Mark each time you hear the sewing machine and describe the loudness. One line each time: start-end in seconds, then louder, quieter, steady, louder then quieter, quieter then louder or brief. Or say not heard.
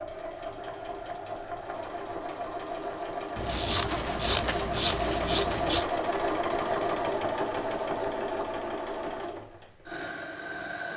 0.0-10.9 louder then quieter.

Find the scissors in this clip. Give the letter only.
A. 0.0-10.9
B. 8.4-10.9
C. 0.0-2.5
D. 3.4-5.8
D.